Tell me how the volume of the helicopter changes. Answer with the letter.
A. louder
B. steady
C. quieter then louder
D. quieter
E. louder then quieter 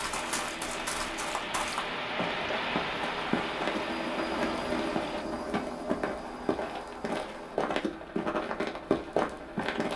E.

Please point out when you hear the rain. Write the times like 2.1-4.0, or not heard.
0.0-5.2.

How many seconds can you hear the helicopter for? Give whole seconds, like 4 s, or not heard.
10 s.